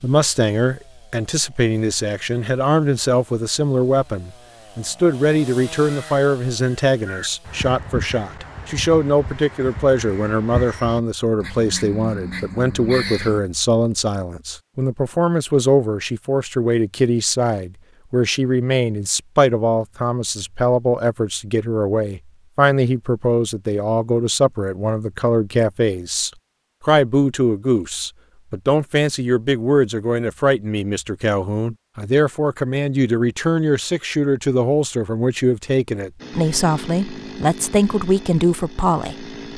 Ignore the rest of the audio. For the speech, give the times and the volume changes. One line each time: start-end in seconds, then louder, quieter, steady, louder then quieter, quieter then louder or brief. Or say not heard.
0.0-39.3 steady.